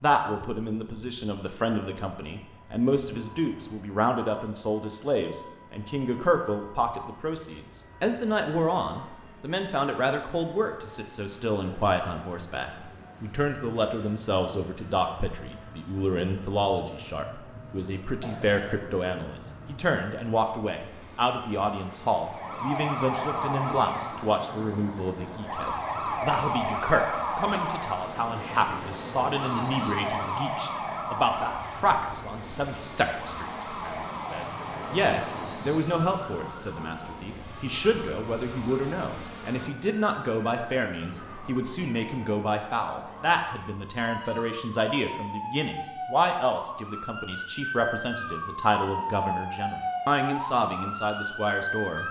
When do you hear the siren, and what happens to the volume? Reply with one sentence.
The siren can be heard from 22.2 to 52.0 s, getting quieter then louder.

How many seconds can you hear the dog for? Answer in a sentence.
The dog can't be heard in this clip.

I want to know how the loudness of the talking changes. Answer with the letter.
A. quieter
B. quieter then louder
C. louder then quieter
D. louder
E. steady
E.